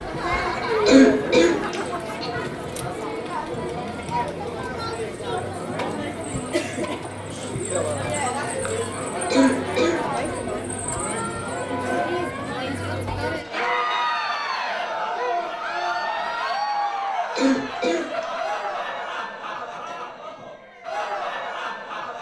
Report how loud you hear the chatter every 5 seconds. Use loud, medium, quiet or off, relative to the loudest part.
loud, loud, loud, loud, medium.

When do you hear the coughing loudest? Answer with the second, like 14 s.
1 s.